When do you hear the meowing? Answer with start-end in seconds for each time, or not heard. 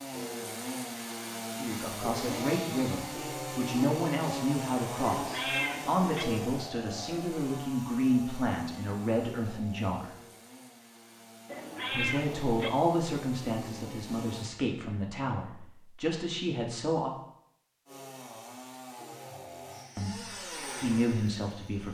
5.2-6.2, 11.4-12.7.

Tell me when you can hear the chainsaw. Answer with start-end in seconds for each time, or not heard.
0.0-14.5, 17.9-21.8.